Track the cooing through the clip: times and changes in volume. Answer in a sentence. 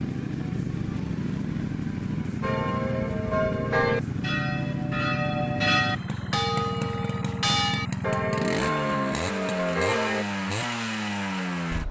You can't hear the cooing here.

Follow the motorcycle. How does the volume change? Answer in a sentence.
The volume of the motorcycle stays about the same.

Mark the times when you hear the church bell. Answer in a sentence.
You can hear the church bell from 2.4 to 10.2 s.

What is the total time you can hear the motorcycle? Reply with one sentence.
You can hear the motorcycle for 12 seconds altogether.